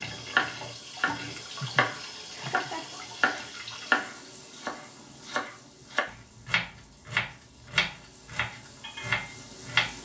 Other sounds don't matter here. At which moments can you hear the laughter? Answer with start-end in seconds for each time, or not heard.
1.6-3.0.